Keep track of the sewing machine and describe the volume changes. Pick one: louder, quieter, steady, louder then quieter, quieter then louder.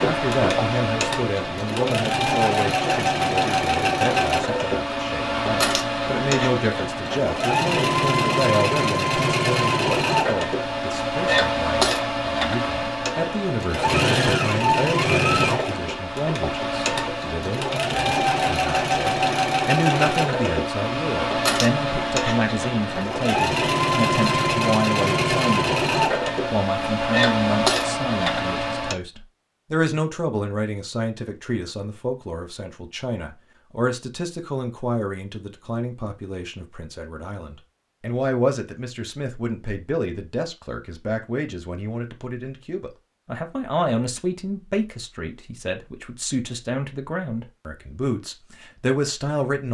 steady.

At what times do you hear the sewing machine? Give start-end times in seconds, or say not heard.
0.0-28.9.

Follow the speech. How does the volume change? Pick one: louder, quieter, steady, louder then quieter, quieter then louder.
steady.